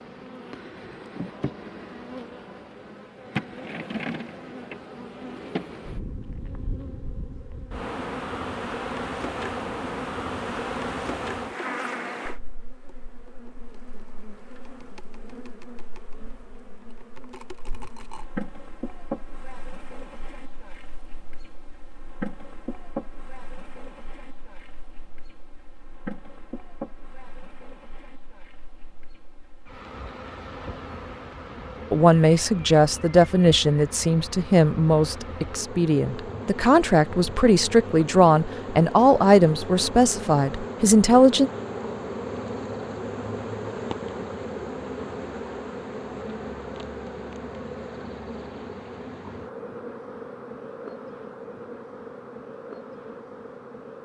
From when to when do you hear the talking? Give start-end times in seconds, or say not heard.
31.9-41.5.